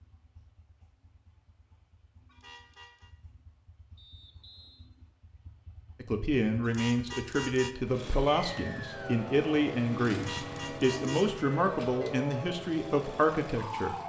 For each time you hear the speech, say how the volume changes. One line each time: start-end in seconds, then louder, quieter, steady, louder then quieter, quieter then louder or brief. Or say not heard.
6.0-13.9 steady.